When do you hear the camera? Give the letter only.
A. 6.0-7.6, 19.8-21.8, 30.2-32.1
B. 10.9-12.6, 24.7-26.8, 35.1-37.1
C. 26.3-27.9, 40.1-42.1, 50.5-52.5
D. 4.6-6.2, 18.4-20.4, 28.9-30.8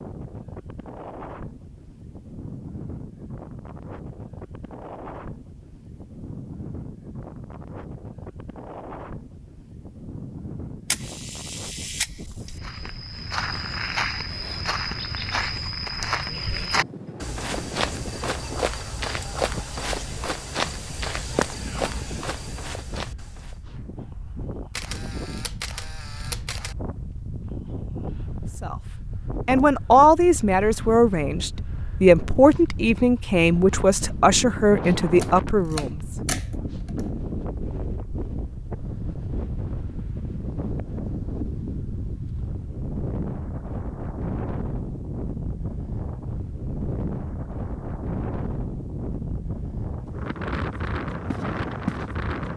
B.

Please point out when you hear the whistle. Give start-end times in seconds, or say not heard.
not heard.